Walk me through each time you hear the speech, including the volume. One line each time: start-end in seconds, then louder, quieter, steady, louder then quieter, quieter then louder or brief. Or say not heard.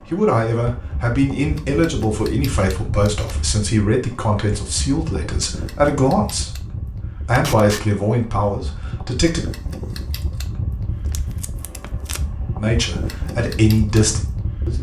0.1-6.6 steady
7.2-9.4 brief
12.6-14.7 brief.